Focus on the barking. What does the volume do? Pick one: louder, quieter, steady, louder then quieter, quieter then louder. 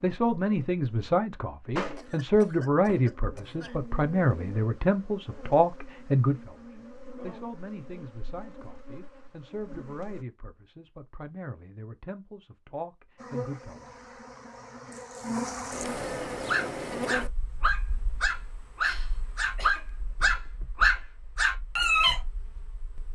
louder.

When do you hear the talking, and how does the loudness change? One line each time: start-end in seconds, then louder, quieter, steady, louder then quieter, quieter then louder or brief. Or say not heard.
0.0-13.9 quieter.